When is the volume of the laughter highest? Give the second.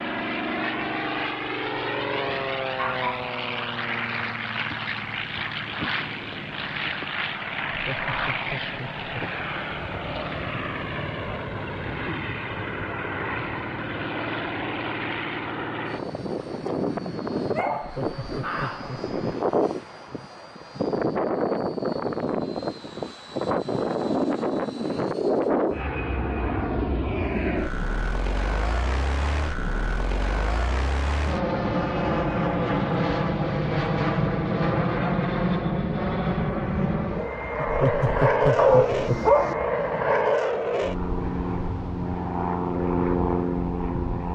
38 s.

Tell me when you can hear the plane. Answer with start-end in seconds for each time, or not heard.
0.0-44.3.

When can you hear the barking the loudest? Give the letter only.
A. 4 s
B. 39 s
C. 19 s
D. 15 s
B.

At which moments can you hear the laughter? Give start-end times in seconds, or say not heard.
7.7-9.1, 17.8-19.1, 37.6-39.2.